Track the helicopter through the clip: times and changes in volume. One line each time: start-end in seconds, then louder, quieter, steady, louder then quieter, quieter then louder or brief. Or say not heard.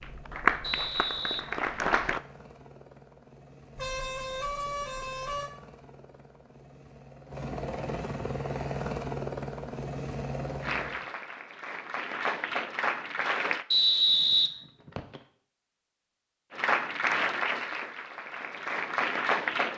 0.0-11.1 louder.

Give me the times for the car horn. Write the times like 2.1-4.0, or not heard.
3.8-5.5.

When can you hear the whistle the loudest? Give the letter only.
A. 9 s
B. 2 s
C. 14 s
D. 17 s
C.